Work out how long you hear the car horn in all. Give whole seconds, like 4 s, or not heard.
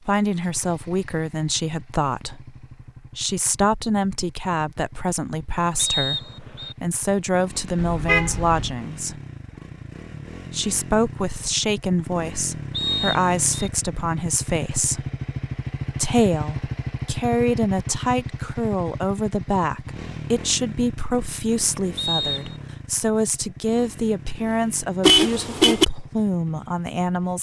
2 s.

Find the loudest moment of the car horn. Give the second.
25 s.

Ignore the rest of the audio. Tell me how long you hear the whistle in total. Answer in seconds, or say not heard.
3 s.